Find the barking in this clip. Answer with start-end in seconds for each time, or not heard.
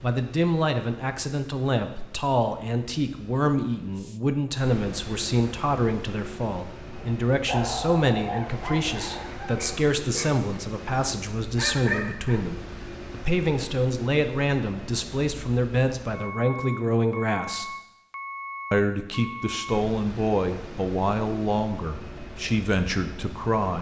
7.0-12.4.